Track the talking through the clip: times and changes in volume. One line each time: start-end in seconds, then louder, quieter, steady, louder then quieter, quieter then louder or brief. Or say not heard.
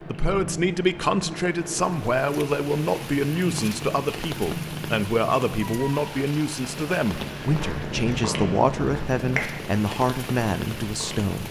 0.0-11.4 steady.